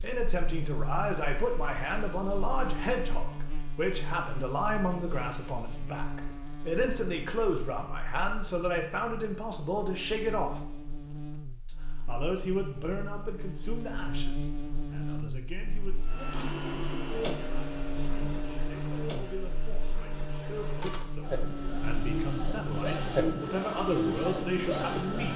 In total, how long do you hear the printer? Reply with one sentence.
The printer can be heard for 9 seconds in total.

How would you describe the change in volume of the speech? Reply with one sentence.
The volume of the speech goes down, then up.